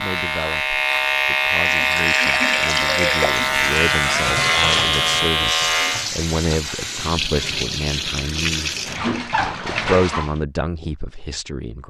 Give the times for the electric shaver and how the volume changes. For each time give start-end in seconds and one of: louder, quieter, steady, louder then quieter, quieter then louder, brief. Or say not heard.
0.0-6.1 steady.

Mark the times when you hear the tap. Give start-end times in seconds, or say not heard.
1.6-10.4.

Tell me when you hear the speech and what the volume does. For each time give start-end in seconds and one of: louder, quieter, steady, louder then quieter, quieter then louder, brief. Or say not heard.
0.0-8.9 louder
9.7-11.8 brief.